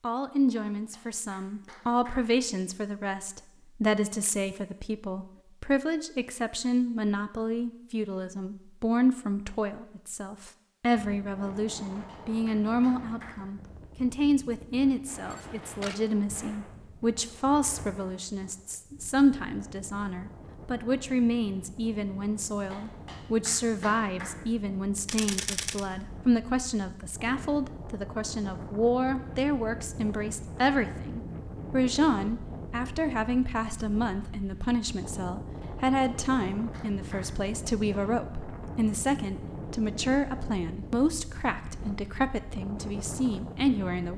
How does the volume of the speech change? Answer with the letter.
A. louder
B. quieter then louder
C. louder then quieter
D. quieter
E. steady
E.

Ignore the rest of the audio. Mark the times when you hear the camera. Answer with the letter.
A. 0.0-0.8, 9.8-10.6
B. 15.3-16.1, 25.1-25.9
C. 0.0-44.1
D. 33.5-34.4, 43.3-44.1
B.